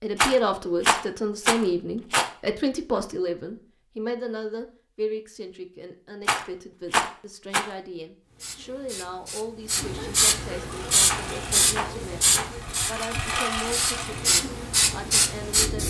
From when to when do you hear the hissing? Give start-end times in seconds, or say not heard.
8.3-15.8.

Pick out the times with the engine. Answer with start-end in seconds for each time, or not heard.
10.6-14.4.